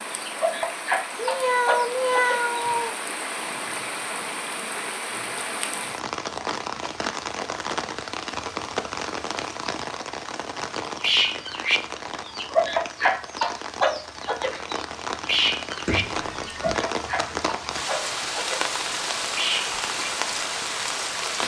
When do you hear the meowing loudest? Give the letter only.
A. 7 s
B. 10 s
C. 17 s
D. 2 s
D.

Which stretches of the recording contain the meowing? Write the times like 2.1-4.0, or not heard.
1.1-3.0, 15.8-16.8.